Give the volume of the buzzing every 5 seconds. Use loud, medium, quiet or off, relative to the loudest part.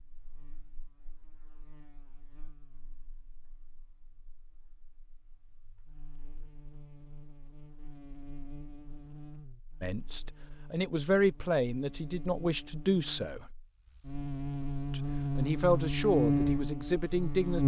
quiet, quiet, quiet, loud.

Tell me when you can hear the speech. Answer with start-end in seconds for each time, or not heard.
9.8-13.5, 14.9-17.6.